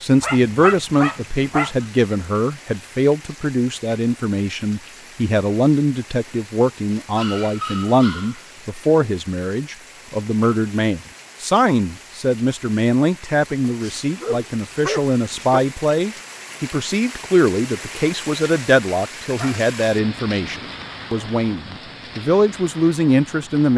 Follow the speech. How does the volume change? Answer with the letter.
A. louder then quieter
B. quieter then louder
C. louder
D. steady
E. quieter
D.